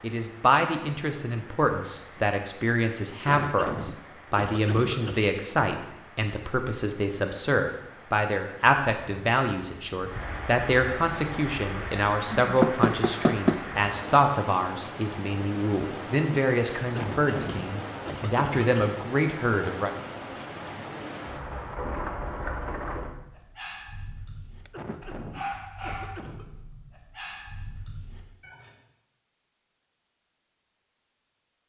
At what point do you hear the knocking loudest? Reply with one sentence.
The volume of the knocking peaks at 13 seconds.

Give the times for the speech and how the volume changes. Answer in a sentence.
The speech can be heard from 0.0 to 19.9 s, at a steady volume.